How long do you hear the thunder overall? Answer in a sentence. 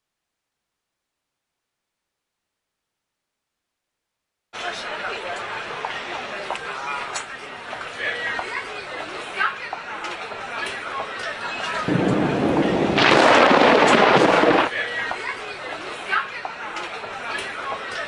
The thunder can be heard for 3 seconds in total.